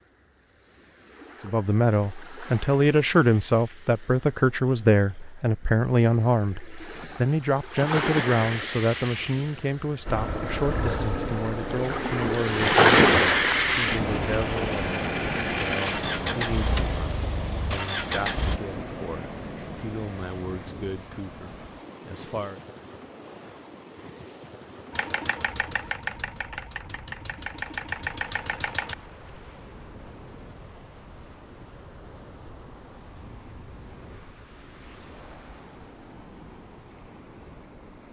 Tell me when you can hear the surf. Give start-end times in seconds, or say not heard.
0.0-38.0.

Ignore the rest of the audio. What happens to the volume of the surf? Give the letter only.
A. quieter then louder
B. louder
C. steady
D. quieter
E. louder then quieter
E.